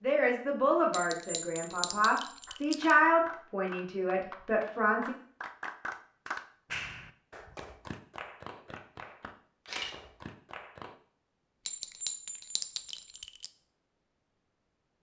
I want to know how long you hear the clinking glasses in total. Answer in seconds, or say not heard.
4 s.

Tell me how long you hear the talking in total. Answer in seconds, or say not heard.
5 s.